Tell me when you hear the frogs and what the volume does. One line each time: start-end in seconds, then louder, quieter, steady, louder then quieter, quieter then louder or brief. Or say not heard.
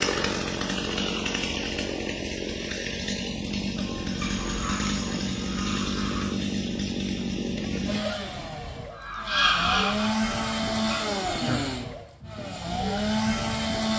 not heard.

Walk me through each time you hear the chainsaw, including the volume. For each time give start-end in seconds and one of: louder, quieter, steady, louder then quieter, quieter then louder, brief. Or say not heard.
0.0-13.9 steady.